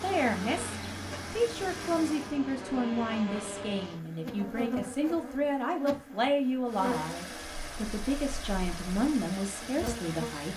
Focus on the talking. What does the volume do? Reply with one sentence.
The loudness of the talking stays about the same.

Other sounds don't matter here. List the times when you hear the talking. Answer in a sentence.
You can hear the talking from 0.0 to 10.5 s.